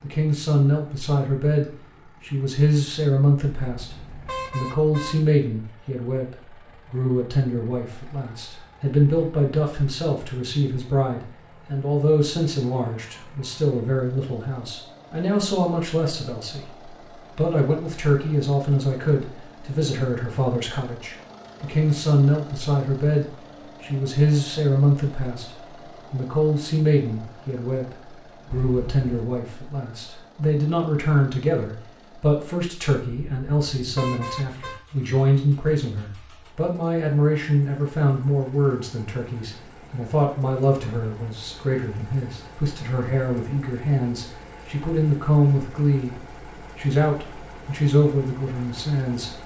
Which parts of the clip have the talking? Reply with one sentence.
The talking can be heard from 0.0 to 46.1 s and from 46.8 to 49.4 s.